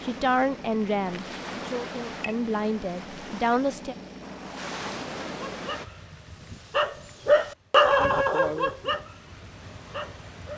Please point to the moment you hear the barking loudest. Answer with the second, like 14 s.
8 s.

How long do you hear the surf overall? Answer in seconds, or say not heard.
6 s.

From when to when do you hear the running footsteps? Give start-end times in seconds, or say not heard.
not heard.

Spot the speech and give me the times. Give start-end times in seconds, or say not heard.
0.0-4.0.